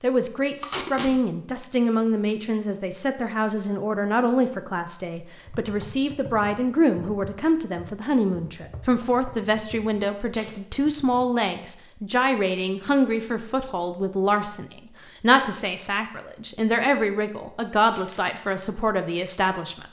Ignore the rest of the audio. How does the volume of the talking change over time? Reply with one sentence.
The loudness of the talking stays about the same.